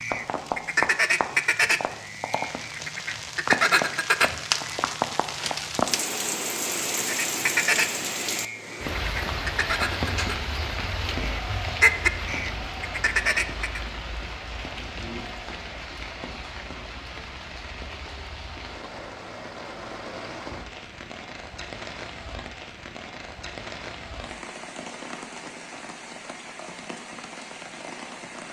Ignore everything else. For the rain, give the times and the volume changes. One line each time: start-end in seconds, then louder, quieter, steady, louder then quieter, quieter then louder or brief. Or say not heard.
0.0-28.4 quieter.